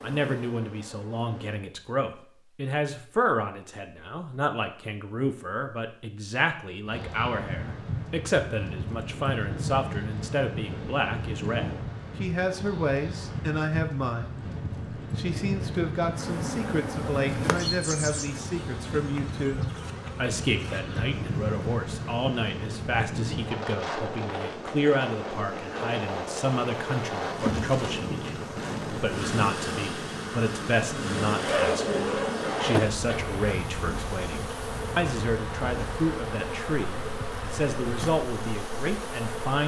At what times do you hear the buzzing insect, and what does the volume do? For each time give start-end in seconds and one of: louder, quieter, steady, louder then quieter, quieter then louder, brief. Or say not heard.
0.0-1.6 brief
16.1-39.6 quieter then louder.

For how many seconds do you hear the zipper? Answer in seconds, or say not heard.
2 s.